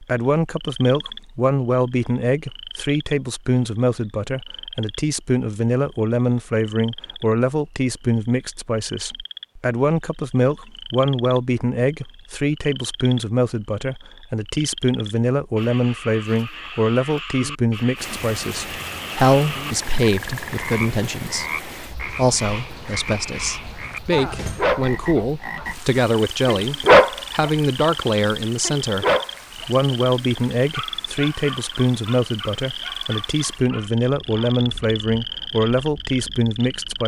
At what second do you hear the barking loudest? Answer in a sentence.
The volume of the barking peaks at 27 seconds.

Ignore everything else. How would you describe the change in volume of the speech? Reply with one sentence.
The loudness of the speech stays about the same.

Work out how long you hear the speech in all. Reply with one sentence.
You can hear the speech for 37 seconds altogether.